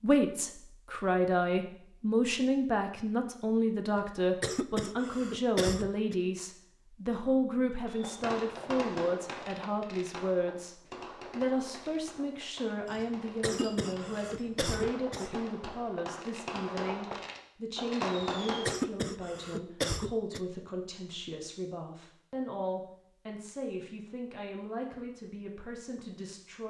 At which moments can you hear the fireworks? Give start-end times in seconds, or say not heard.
7.8-18.8.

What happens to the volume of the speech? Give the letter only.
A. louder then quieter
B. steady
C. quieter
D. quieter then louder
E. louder
C.